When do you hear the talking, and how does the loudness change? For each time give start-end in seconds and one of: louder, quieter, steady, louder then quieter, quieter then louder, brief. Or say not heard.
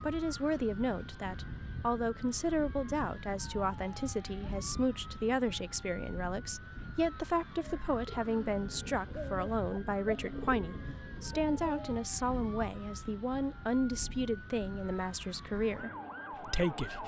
0.0-17.0 steady.